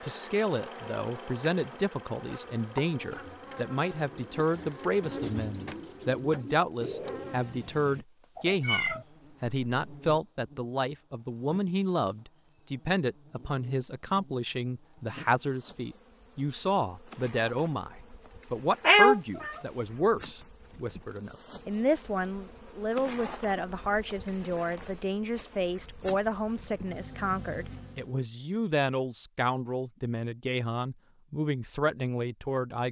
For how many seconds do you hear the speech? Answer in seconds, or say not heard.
33 s.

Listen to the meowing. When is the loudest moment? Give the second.
19 s.